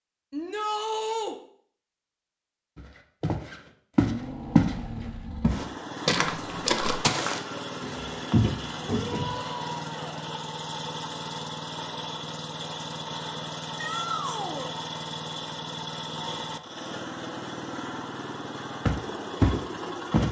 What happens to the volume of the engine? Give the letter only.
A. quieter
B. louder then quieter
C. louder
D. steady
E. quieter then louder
D.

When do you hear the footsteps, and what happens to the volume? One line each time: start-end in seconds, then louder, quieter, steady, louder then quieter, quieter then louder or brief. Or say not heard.
2.8-4.8 brief
5.4-9.4 quieter then louder
18.9-20.2 brief.